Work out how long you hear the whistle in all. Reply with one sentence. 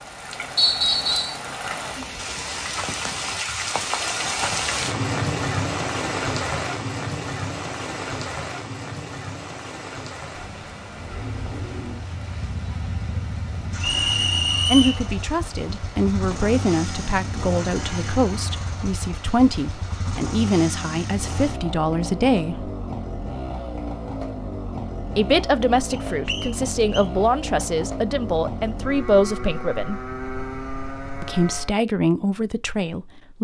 The whistle can be heard for 3 seconds in total.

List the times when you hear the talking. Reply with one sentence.
You can hear the talking from 14.7 to 22.7 s, from 25.1 to 30.0 s and from 31.2 to 33.3 s.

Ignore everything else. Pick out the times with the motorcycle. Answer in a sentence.
The motorcycle can be heard from 10.9 to 31.8 s.